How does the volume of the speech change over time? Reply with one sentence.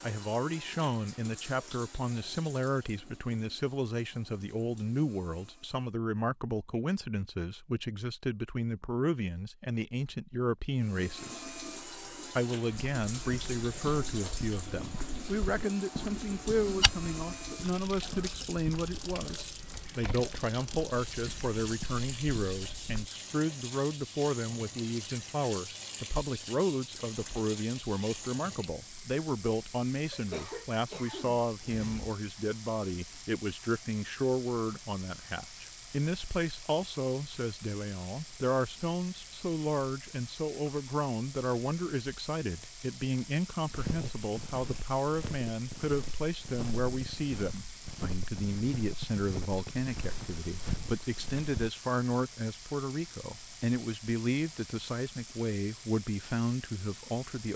The volume of the speech stays about the same.